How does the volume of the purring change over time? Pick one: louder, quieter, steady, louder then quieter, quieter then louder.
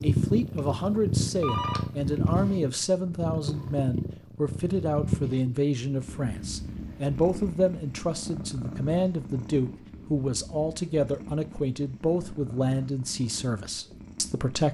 quieter.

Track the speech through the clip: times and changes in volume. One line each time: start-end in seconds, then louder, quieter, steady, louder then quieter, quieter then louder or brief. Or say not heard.
0.0-14.6 steady.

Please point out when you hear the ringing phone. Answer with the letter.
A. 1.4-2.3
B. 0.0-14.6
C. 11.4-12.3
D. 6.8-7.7
A.